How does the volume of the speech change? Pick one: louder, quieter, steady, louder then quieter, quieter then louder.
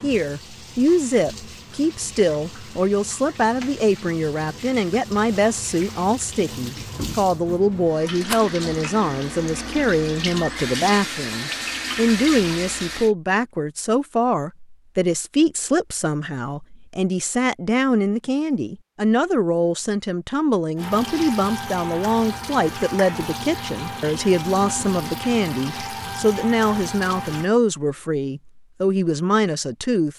steady.